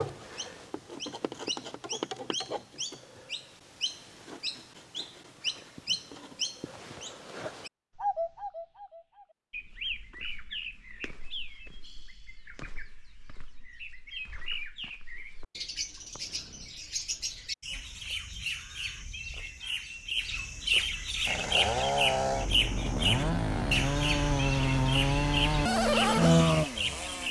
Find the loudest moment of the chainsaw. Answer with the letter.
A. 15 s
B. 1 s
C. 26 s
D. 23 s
C.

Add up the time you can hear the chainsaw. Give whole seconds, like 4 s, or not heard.
6 s.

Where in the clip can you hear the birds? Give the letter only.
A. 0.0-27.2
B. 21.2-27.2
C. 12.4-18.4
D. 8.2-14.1
A.